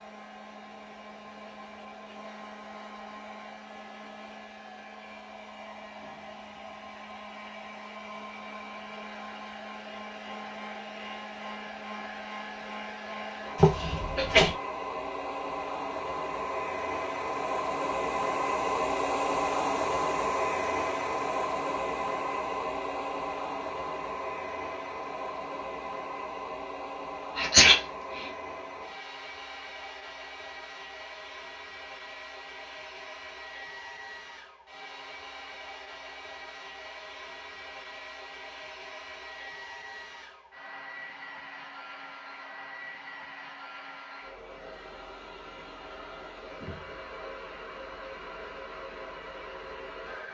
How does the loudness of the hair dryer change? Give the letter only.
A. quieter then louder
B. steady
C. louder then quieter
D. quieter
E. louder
C.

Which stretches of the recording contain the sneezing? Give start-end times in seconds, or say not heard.
13.6-14.6, 27.4-28.3.